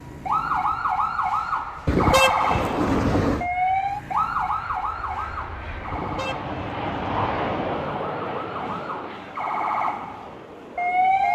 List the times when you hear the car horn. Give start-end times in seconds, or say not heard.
1.9-3.5, 5.9-7.8.